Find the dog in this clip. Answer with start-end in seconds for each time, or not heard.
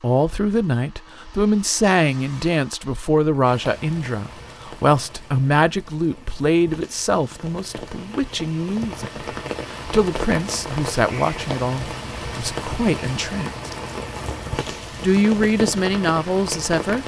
not heard.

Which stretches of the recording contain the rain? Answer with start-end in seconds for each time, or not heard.
3.4-17.0.